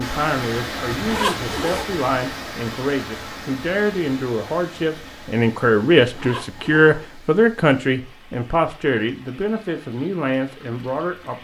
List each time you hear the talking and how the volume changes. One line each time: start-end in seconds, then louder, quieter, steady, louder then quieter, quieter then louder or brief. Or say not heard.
0.0-11.3 louder then quieter.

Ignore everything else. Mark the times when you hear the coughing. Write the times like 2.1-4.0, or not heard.
not heard.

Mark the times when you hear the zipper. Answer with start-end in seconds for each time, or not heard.
0.9-1.9, 6.0-7.0.